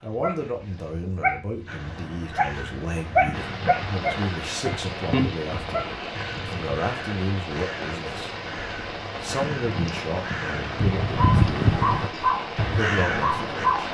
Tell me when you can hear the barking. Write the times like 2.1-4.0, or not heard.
0.0-5.8, 11.2-13.8.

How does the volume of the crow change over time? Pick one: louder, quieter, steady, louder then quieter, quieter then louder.
louder.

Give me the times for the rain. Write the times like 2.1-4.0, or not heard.
3.3-13.8.